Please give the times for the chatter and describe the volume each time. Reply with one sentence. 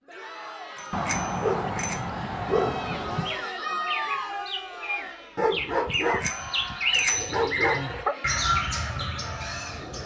The chatter can be heard from 0.1 to 10.0 s, getting louder then quieter.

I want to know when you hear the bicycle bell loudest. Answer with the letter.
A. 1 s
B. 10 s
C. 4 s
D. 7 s
D.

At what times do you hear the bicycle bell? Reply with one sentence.
The bicycle bell can be heard from 0.8 to 2.0 s and from 5.9 to 7.3 s.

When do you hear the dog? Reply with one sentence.
The dog can be heard from 0.9 to 3.4 s and from 5.3 to 8.2 s.